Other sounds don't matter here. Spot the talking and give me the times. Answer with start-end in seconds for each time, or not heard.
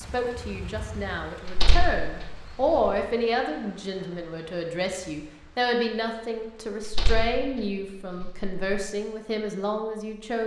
0.0-10.4.